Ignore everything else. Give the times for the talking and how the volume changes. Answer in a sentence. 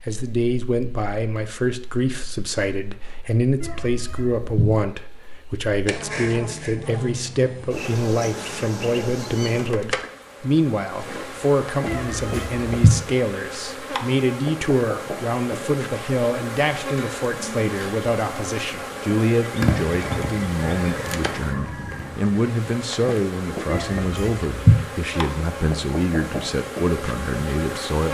The talking can be heard from 0.0 to 28.0 s, at a steady volume.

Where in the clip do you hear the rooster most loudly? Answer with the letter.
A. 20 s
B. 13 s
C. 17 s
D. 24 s
A.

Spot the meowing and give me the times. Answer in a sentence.
You can hear the meowing from 3.6 to 4.7 s, from 11.8 to 12.9 s and from 23.7 to 24.8 s.